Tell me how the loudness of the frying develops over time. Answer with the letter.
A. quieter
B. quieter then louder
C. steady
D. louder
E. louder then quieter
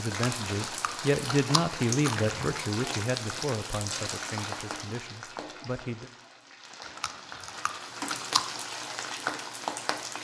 B.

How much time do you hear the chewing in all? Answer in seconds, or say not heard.
4 s.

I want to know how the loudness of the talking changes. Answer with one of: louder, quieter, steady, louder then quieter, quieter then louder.
quieter.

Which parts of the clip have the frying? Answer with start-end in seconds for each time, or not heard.
0.0-10.1.